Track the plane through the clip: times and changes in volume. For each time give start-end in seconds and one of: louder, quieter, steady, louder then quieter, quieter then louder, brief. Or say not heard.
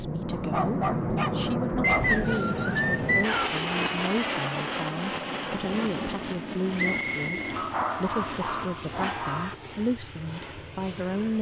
0.0-11.3 quieter.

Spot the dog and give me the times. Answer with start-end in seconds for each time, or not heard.
0.3-2.1, 7.5-9.6.